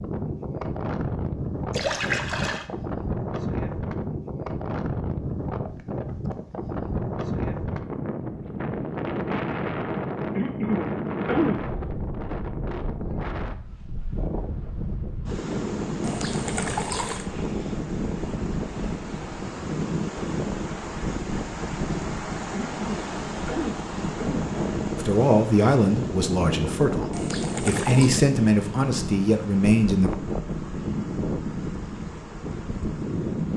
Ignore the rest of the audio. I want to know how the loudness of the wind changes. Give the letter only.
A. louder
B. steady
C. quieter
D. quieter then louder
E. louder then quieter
B.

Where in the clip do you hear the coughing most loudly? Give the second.
11 s.